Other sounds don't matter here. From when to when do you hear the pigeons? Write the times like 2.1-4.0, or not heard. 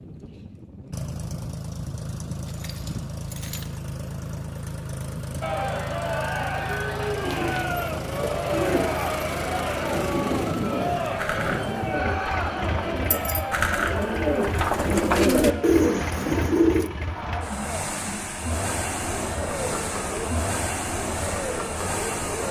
7.0-16.9.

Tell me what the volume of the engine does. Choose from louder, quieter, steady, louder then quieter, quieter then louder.
steady.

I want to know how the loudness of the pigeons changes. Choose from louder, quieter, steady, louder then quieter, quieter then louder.
louder.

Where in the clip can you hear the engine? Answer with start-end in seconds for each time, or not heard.
0.0-22.4.